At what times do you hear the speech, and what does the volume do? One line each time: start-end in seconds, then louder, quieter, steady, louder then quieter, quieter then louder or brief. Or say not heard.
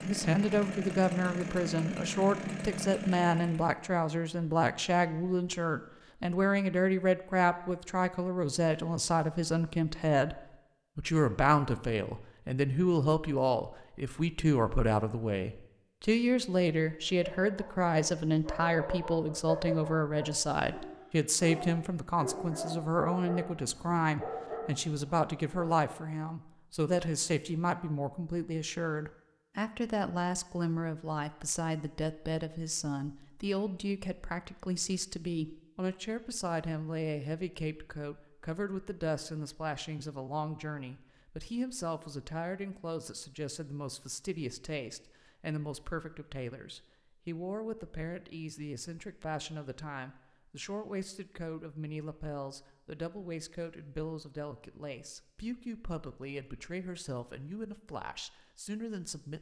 0.0-59.3 quieter.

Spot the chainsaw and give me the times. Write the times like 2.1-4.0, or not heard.
0.0-3.8.